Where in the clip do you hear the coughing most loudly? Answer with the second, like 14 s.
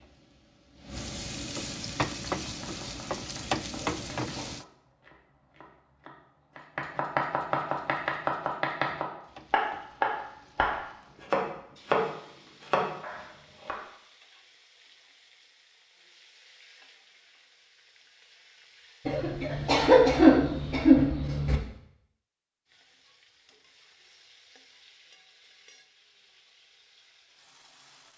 20 s.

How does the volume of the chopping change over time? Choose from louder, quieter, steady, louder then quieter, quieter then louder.
louder.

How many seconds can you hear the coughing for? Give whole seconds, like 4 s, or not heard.
3 s.